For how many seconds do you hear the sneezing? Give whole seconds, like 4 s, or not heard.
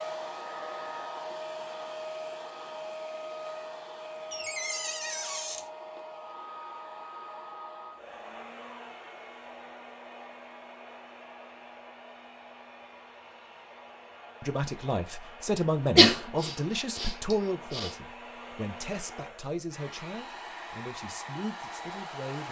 2 s.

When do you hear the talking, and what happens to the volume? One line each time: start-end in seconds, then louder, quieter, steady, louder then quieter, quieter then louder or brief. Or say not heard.
14.4-22.4 quieter.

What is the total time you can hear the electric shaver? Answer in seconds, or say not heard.
not heard.